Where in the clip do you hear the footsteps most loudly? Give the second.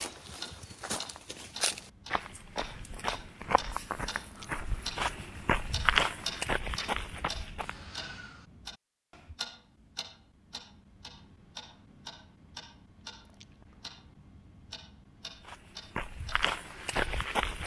6 s.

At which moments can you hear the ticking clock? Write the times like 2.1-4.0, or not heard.
0.0-17.6.